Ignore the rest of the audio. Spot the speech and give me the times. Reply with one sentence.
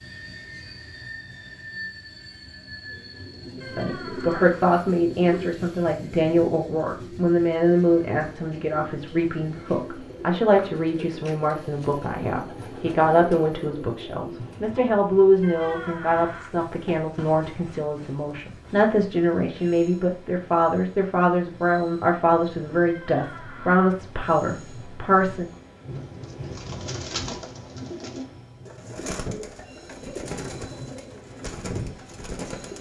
The speech can be heard from 3.6 to 25.5 s.